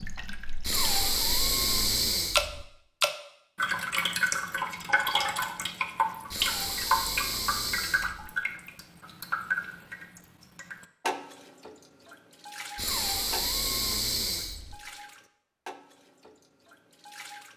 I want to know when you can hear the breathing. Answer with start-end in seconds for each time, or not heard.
0.6-2.6, 6.3-8.3, 12.8-14.8.